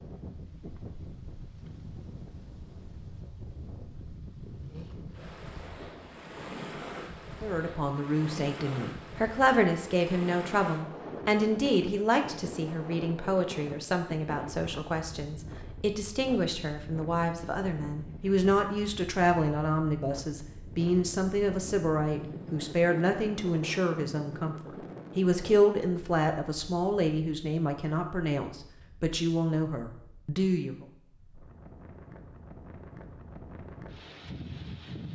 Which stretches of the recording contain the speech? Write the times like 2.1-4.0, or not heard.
7.4-30.8.